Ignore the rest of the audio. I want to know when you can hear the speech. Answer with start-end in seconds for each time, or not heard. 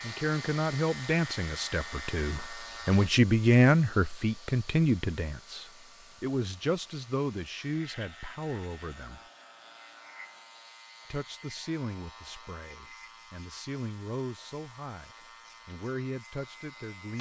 0.0-9.2, 11.1-17.1.